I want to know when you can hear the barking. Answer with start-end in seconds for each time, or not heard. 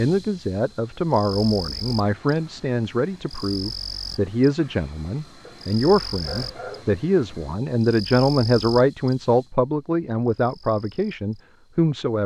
5.5-7.0.